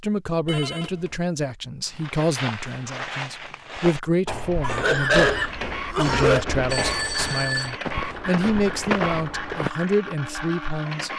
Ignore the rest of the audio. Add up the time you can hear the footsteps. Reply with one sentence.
The footsteps can be heard for 8 seconds in total.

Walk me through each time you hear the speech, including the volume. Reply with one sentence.
The speech can be heard from 0.0 to 11.1 s, at a steady volume.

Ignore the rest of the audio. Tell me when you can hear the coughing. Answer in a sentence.
You can hear the coughing from 4.6 to 6.5 s.